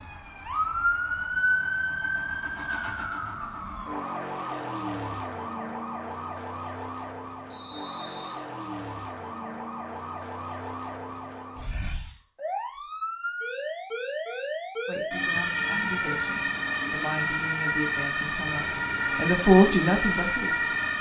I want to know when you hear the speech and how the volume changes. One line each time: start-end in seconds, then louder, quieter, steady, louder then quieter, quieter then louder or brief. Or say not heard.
14.8-20.8 louder.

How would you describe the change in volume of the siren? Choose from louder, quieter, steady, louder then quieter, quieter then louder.
quieter then louder.